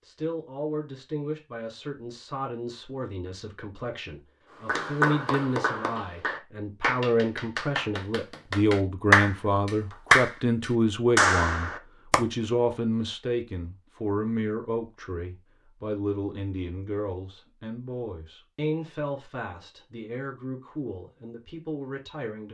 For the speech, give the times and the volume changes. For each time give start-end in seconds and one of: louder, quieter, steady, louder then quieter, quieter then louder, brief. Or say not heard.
0.0-22.5 louder then quieter.